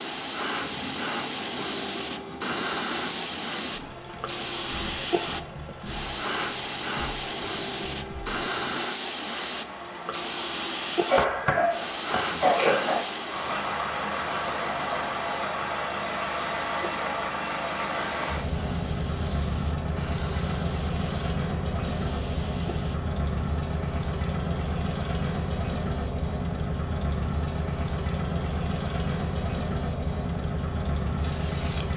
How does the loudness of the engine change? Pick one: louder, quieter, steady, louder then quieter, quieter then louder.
louder.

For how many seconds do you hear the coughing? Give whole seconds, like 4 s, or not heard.
2 s.